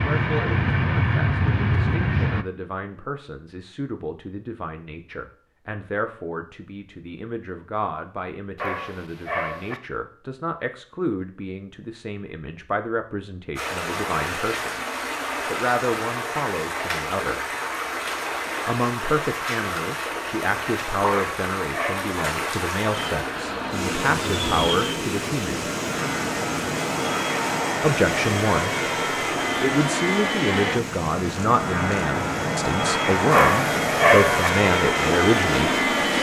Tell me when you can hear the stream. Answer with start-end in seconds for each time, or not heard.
13.6-36.1.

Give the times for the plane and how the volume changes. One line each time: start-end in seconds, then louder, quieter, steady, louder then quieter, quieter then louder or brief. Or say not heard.
0.0-2.5 brief
22.9-36.1 louder.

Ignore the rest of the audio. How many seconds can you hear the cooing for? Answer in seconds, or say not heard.
not heard.